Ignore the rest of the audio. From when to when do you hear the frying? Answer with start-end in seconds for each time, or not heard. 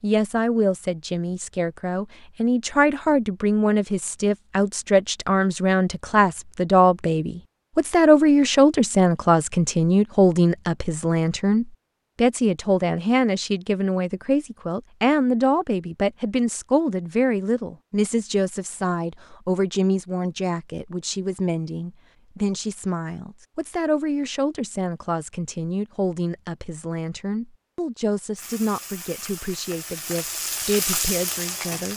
28.4-31.9.